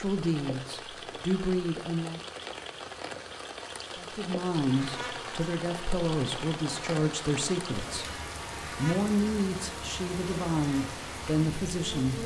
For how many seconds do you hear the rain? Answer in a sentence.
You can hear the rain for 12 seconds altogether.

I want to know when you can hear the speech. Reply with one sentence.
You can hear the speech from 0.0 to 2.2 s and from 4.0 to 12.2 s.